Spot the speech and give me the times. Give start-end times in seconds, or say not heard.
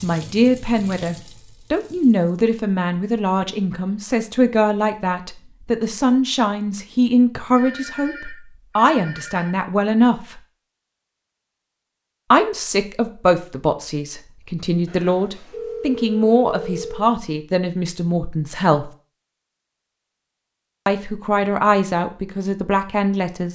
0.0-10.4, 12.3-18.9, 20.9-23.5.